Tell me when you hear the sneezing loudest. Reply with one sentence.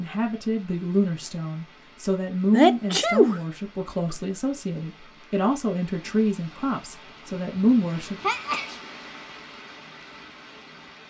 The loudest moment of the sneezing is at 3 seconds.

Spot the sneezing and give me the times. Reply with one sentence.
The sneezing can be heard from 2.5 to 3.4 s and from 7.5 to 8.8 s.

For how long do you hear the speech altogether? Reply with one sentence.
You can hear the speech for 8 seconds altogether.